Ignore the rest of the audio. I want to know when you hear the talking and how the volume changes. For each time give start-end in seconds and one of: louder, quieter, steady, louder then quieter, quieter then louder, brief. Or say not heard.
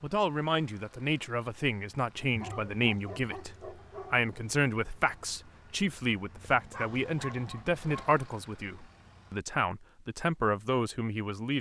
0.0-11.5 steady.